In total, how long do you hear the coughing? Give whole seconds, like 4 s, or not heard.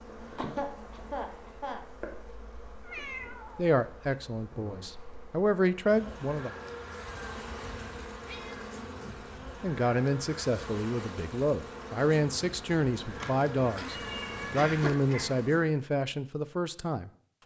3 s.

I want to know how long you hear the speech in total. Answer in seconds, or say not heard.
11 s.